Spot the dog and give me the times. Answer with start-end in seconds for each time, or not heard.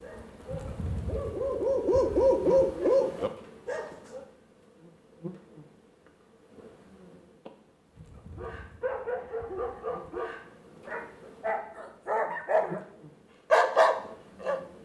0.0-4.2, 8.3-12.8, 13.5-14.6.